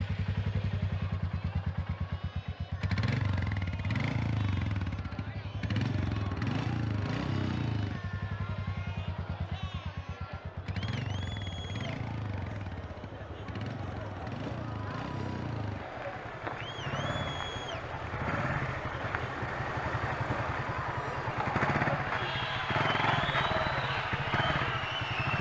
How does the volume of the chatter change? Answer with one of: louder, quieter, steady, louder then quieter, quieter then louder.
louder.